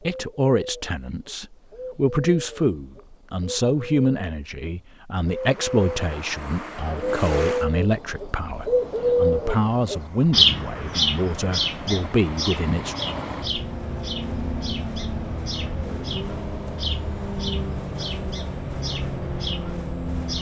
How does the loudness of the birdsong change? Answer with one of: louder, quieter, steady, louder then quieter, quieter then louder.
louder then quieter.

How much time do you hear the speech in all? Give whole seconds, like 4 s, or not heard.
13 s.